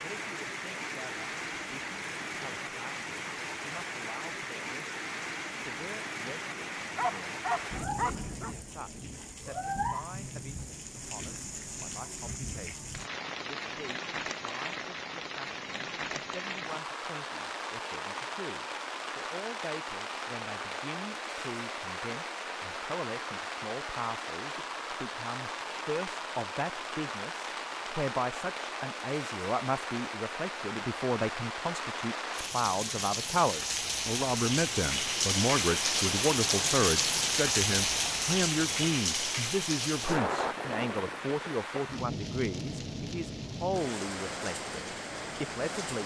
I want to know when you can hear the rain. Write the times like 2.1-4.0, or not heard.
0.0-46.0.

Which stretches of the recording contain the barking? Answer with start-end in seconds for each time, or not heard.
7.0-8.6.